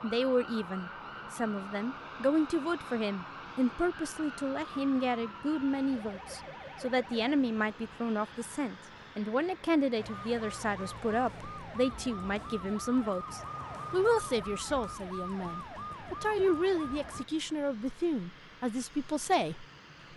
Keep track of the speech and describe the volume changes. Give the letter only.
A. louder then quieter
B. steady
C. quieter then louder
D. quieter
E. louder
B.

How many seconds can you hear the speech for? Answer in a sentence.
The speech can be heard for 20 seconds in total.